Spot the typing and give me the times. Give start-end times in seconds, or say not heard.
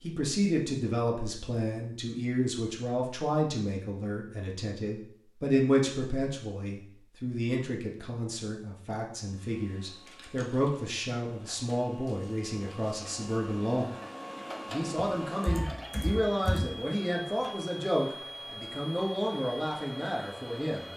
14.9-16.7.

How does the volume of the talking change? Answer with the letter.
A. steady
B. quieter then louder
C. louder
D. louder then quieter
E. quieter
A.